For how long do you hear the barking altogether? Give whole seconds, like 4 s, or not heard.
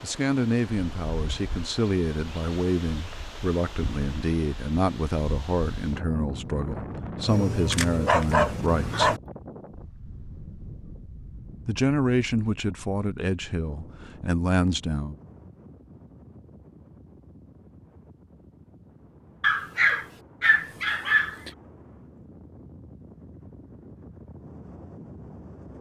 4 s.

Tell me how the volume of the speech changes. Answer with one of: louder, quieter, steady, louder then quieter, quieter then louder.
steady.